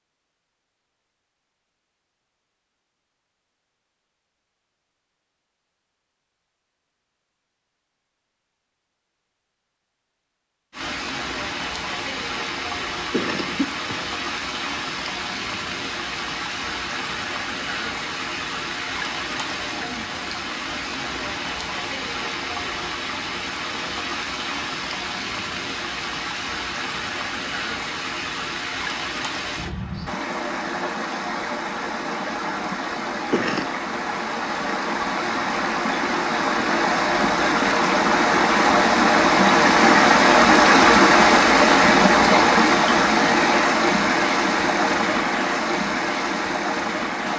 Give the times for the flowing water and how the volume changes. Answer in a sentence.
You can hear the flowing water from 10.7 to 47.3 s, getting louder.